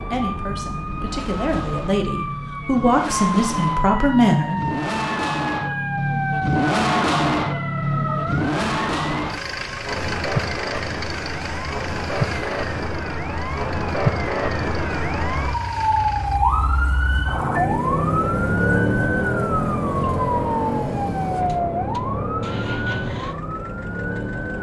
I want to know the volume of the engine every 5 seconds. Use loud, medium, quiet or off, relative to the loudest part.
medium, loud, medium, quiet, quiet.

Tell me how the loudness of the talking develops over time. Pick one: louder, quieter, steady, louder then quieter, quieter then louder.
louder.